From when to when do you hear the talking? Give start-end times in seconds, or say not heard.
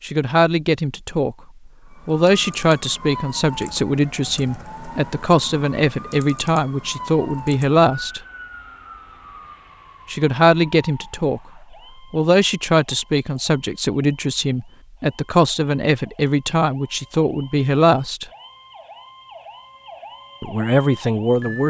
0.0-1.4, 2.0-8.2, 10.1-11.4, 12.1-18.2, 20.4-21.6.